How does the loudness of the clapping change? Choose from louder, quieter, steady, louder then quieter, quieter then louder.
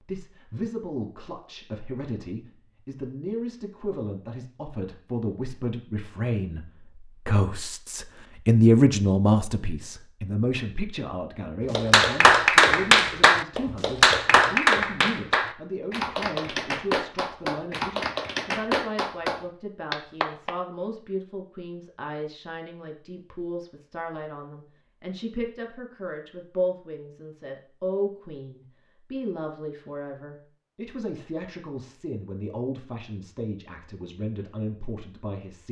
quieter.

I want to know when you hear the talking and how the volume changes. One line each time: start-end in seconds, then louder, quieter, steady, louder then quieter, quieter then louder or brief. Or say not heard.
0.0-35.6 louder then quieter.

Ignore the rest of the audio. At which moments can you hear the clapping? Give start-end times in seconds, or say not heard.
11.7-20.6.